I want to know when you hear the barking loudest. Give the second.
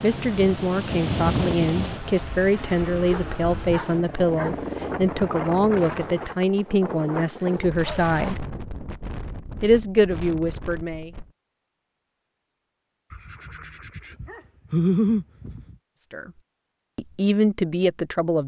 15 s.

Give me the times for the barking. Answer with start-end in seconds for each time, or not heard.
3.0-4.7, 7.8-8.3, 13.1-15.8.